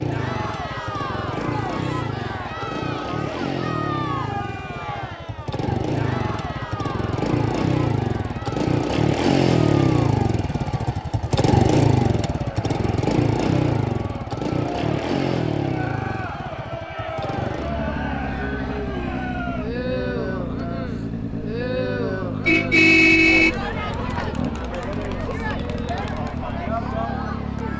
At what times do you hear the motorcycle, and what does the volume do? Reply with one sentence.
The motorcycle can be heard from 0.0 to 27.7 s, getting louder then quieter.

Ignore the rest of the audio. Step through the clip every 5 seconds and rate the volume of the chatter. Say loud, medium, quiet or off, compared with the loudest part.
loud, medium, medium, loud, loud, loud.